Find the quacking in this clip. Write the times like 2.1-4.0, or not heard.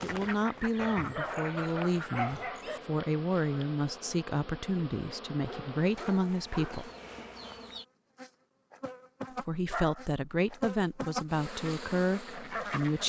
0.0-2.4, 11.3-13.0.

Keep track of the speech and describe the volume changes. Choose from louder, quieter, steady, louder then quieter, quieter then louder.
steady.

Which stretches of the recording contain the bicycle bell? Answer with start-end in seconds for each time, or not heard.
not heard.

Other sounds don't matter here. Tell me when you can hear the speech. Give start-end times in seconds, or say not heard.
0.0-6.9, 9.4-13.0.